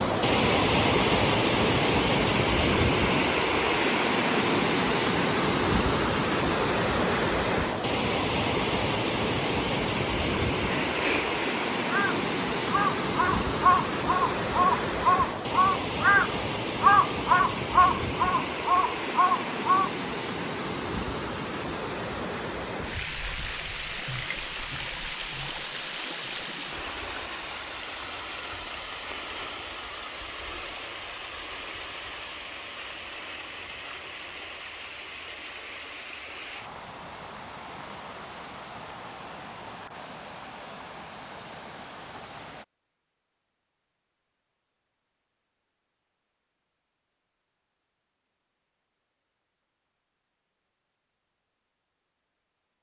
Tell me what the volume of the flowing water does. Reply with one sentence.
The volume of the flowing water goes down.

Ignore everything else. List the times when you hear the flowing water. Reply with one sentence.
You can hear the flowing water from 0.0 to 42.6 s.